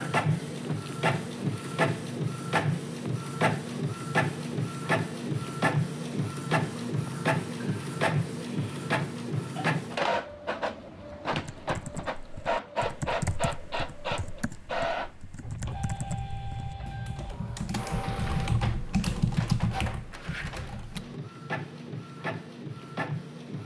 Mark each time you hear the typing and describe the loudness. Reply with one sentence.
You can hear the typing from 11.3 to 21.2 s, getting quieter then louder.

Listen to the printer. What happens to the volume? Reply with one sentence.
The volume of the printer goes down.